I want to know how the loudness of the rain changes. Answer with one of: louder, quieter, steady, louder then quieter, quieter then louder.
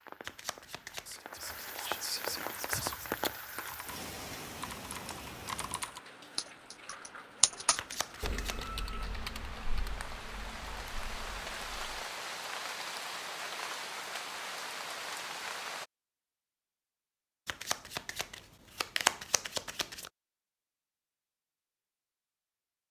quieter then louder.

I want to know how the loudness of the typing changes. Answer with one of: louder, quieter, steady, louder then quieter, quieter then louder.
louder then quieter.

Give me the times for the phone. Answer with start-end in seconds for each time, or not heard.
not heard.